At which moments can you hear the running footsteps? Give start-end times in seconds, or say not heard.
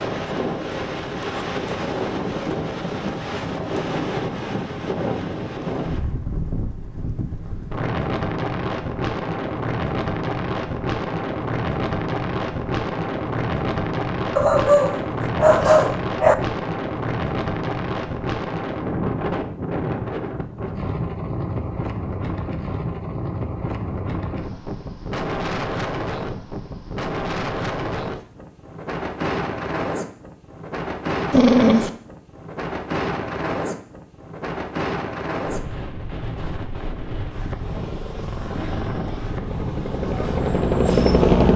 not heard.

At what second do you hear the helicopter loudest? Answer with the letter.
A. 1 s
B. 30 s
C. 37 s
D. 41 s
D.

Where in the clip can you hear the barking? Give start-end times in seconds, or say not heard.
14.3-16.4, 31.3-31.9.